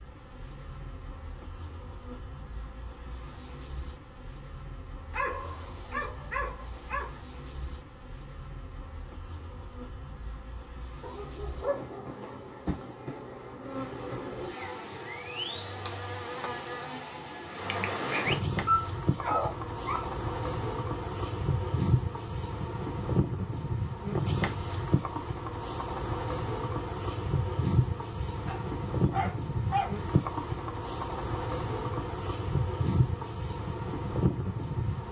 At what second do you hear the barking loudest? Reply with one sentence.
The volume of the barking peaks at 19 seconds.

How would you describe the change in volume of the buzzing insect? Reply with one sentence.
The volume of the buzzing insect goes up.